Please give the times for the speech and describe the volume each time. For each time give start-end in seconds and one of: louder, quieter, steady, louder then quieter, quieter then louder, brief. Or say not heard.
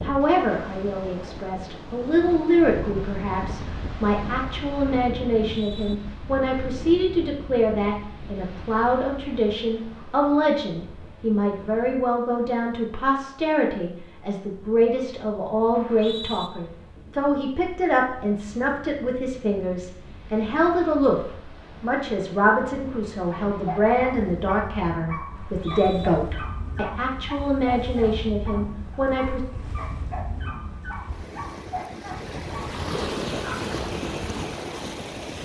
0.0-29.4 steady.